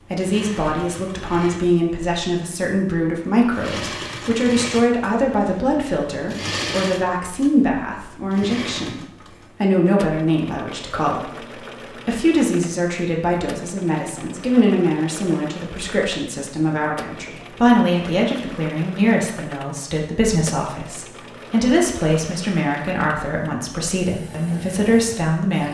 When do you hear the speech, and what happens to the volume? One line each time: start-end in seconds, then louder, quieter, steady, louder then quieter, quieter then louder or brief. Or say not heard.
0.0-25.6 steady.